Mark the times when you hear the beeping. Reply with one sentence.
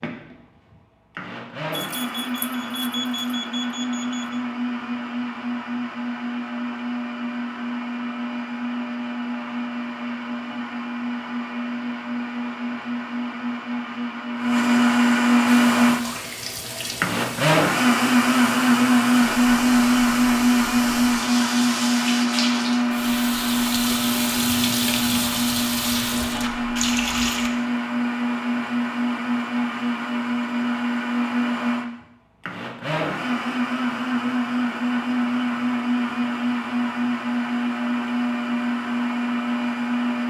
The beeping can be heard from 1.7 to 4.4 s.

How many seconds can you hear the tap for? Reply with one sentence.
You can hear the tap for 12 seconds altogether.